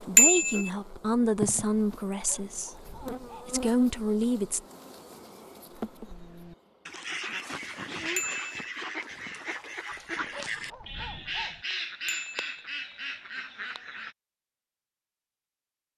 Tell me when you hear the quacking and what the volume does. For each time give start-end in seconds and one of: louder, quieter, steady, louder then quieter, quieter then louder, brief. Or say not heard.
5.8-14.2 steady.